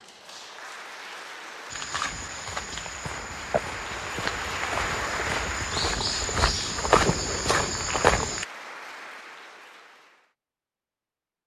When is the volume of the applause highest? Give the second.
5 s.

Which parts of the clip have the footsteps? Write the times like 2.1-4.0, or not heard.
1.7-8.4.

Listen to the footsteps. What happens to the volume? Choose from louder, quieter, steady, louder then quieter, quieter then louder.
louder.